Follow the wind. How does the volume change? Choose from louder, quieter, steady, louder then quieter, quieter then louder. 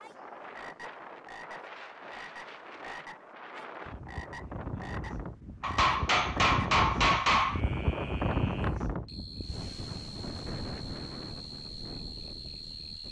louder then quieter.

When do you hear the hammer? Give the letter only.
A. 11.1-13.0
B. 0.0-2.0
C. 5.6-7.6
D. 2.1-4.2
C.